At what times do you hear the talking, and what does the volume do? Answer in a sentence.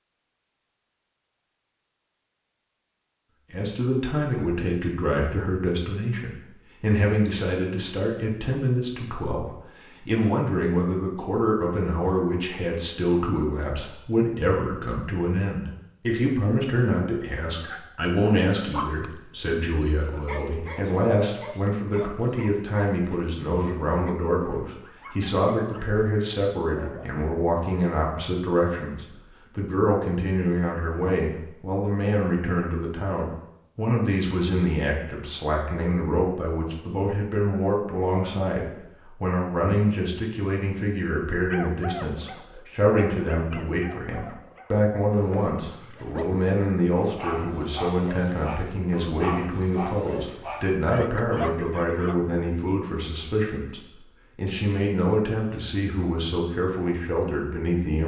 You can hear the talking from 3.5 to 58.0 s, at a steady volume.